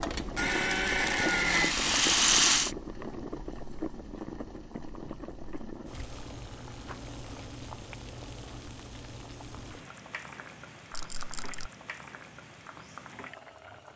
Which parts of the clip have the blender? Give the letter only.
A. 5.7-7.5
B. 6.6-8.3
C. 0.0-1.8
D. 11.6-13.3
C.